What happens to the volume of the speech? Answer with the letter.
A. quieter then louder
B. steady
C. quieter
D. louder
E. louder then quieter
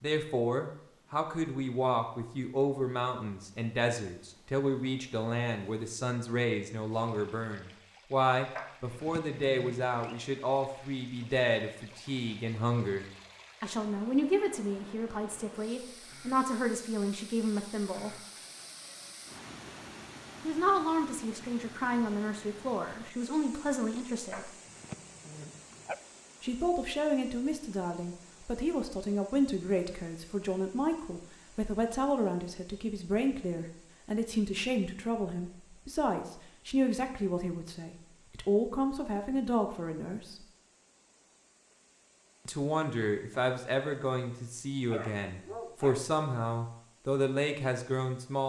B.